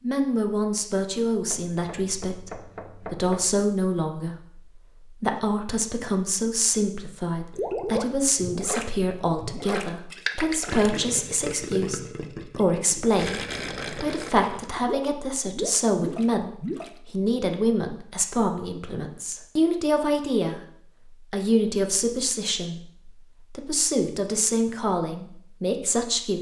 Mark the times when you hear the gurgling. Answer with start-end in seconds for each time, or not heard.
7.5-16.9.